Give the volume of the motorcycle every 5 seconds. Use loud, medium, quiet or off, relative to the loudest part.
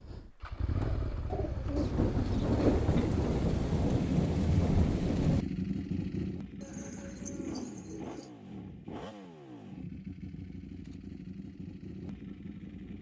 loud, loud, medium.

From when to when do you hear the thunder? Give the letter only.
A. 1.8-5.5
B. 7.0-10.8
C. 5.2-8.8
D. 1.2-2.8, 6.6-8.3
A.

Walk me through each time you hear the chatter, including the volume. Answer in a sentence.
You can't hear the chatter here.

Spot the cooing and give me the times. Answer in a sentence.
The cooing can be heard from 1.2 to 2.8 s and from 6.6 to 8.3 s.